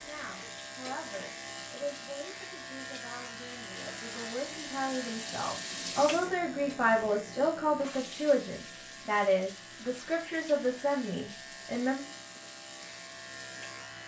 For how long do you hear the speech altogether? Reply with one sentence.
The speech can be heard for 12 seconds in total.